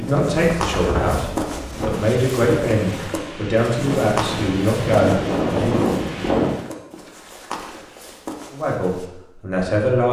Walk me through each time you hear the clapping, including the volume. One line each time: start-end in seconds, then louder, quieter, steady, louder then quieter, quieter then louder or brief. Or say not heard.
not heard.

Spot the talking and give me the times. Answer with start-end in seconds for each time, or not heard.
0.0-5.9, 8.5-10.0.